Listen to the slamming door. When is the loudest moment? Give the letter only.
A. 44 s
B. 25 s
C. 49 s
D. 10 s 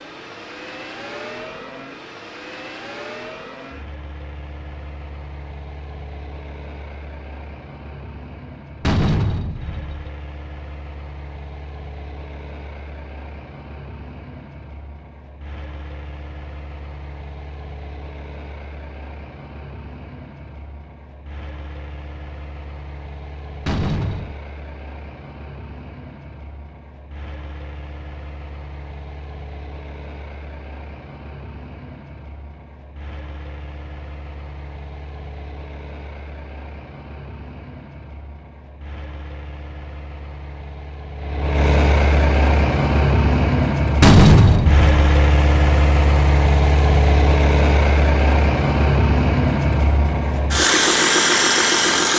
A.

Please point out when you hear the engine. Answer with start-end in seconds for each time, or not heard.
0.0-52.1.